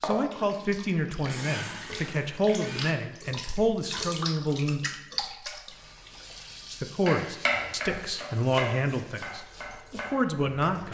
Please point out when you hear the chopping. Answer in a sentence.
The chopping can be heard from 7.0 to 10.8 s.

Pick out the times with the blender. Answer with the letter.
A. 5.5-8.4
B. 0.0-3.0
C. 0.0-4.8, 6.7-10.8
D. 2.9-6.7
B.